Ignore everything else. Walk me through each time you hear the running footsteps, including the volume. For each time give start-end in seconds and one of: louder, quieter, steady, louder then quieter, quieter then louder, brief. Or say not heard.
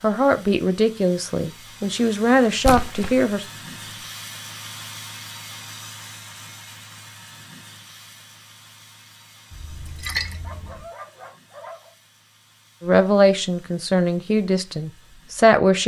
not heard.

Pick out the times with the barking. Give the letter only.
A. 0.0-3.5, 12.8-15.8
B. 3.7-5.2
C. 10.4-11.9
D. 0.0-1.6
C.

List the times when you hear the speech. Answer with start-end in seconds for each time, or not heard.
0.0-3.5, 12.8-15.8.